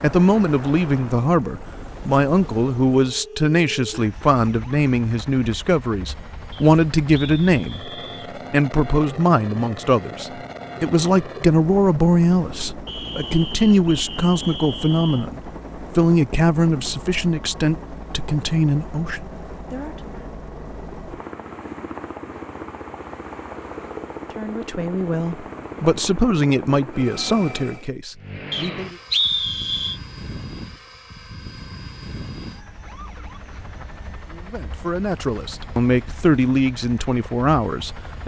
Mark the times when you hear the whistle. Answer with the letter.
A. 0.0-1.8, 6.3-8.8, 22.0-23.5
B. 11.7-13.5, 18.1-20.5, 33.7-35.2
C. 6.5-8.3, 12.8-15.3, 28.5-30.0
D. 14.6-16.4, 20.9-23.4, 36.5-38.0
C.